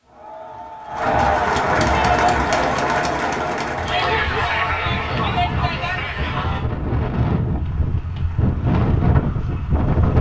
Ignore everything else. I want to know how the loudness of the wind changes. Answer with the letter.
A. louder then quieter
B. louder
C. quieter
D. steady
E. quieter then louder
B.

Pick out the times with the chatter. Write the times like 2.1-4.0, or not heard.
0.0-6.7.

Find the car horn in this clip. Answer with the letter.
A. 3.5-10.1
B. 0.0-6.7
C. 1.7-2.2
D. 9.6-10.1
C.